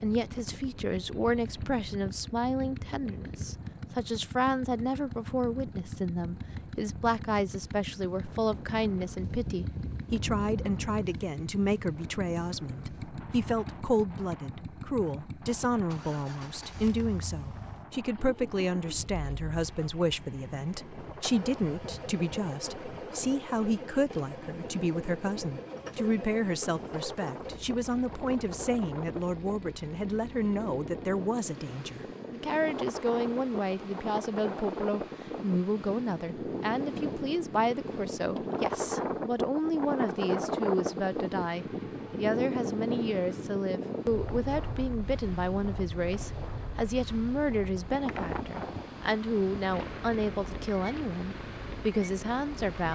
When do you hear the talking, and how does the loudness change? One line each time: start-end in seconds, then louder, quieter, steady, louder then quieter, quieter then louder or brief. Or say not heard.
0.0-52.8 steady.